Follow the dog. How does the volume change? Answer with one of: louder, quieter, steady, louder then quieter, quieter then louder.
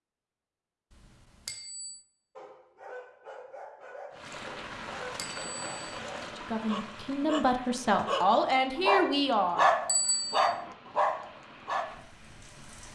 louder.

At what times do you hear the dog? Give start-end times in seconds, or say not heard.
2.4-11.8.